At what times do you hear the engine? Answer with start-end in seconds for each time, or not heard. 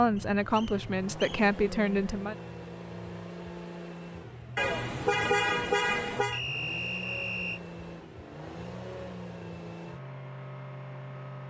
0.0-11.4.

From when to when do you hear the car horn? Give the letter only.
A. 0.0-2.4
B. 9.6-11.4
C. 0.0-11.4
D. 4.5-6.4
D.